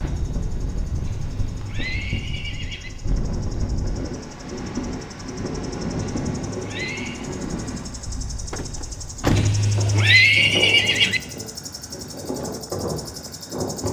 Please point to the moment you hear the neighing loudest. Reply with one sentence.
The volume of the neighing peaks at 10 seconds.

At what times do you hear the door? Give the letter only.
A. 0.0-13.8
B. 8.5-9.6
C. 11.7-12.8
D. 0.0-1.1
B.